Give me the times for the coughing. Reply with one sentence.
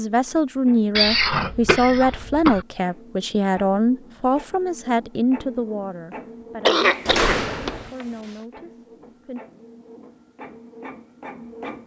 You can hear the coughing from 0.9 to 2.6 s and from 6.7 to 8.1 s.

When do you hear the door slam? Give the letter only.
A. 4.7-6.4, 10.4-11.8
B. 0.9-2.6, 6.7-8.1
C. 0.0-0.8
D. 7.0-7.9
D.